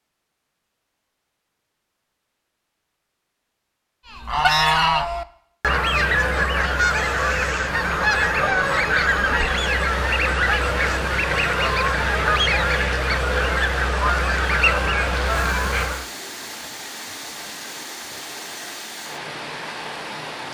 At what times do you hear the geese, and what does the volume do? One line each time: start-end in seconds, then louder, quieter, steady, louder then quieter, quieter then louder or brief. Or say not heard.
4.0-16.1 steady.